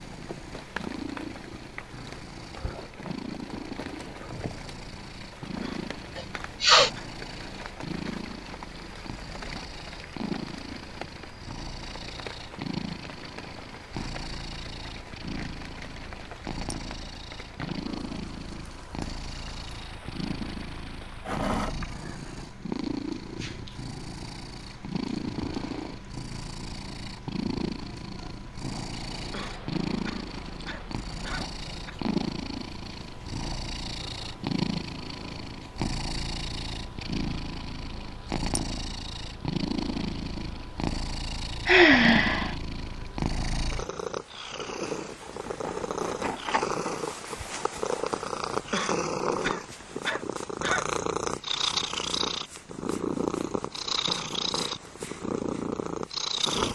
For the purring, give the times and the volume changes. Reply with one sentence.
The purring can be heard from 0.0 to 56.7 s, getting louder.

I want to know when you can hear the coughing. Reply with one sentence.
You can hear the coughing from 5.6 to 7.1 s, from 29.3 to 31.9 s and from 48.7 to 51.0 s.